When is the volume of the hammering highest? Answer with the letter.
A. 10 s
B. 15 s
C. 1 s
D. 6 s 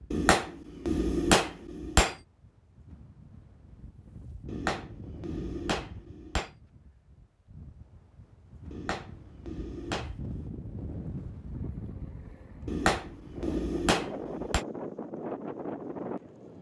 C.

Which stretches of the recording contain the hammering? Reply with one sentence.
You can hear the hammering from 0.1 to 2.1 s, from 4.5 to 6.5 s, from 8.7 to 10.5 s and from 12.7 to 14.7 s.